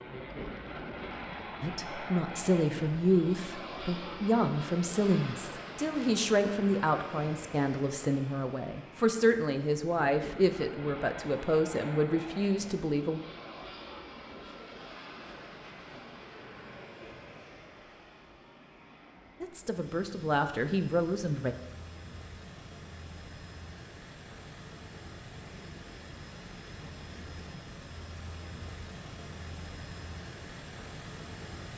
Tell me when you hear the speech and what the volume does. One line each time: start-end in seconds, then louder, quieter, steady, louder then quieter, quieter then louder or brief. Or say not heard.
1.6-13.2 steady
19.4-21.6 brief.